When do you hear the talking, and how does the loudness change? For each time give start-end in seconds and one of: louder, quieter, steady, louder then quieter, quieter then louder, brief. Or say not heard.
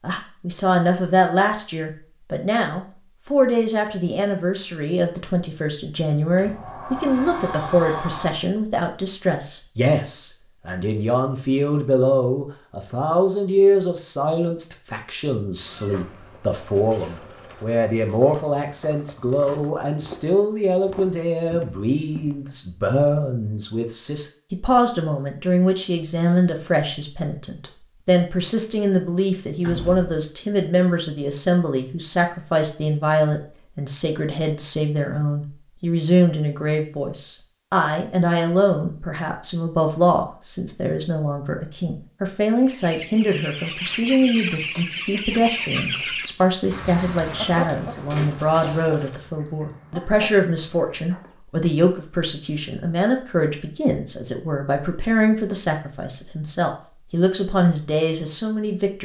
0.0-59.0 steady.